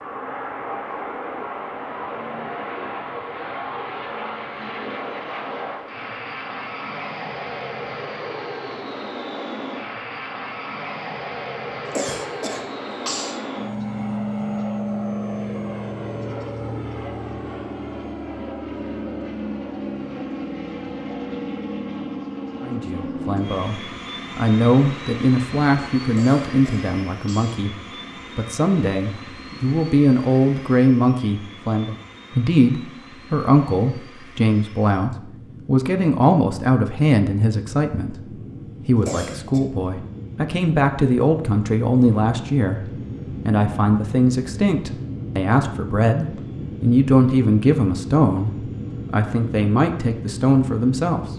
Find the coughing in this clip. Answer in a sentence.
You can hear the coughing from 11.9 to 13.4 s, from 26.1 to 27.6 s and from 39.0 to 39.6 s.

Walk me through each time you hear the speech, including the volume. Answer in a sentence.
The speech can be heard from 22.6 to 51.3 s, at a steady volume.